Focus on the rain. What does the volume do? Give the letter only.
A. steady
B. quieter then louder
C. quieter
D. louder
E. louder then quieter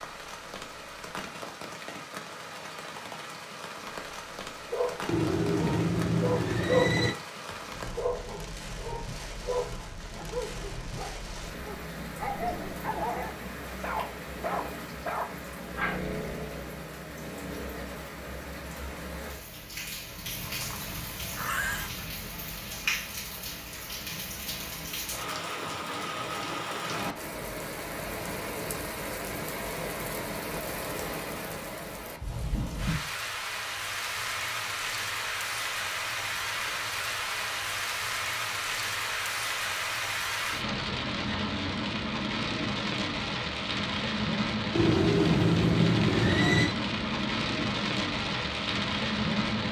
D.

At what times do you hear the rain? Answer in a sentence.
You can hear the rain from 0.0 to 49.6 s.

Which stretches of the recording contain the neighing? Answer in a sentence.
You can hear the neighing from 5.0 to 7.2 s, from 20.4 to 21.9 s and from 44.8 to 46.8 s.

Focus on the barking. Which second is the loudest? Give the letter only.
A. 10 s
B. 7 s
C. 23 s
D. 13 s
B.